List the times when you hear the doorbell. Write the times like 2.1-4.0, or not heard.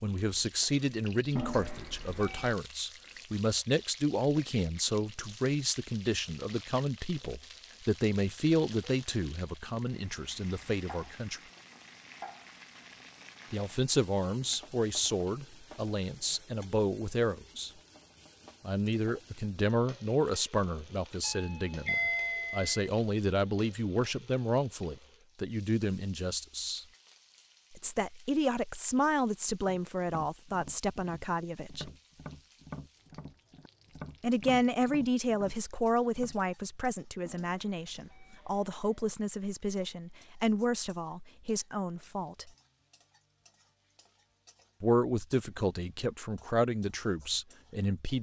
1.4-2.5, 21.2-22.9, 37.2-38.9.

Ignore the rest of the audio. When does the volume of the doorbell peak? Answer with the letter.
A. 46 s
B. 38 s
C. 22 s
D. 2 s
C.